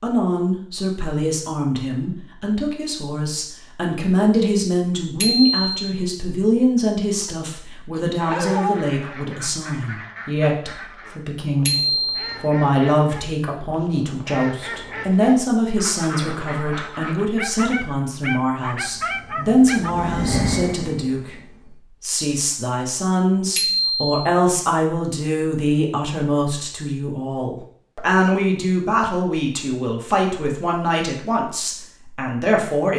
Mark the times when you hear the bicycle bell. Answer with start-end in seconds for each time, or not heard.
5.2-5.7, 11.7-12.3, 23.6-24.2.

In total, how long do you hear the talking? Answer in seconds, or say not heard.
32 s.